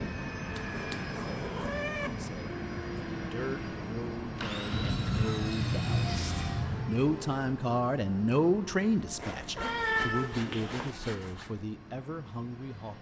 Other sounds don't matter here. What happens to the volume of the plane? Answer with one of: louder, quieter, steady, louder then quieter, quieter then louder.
quieter.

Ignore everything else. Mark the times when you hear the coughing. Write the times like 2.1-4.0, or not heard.
not heard.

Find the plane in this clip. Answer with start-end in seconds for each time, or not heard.
0.0-12.9.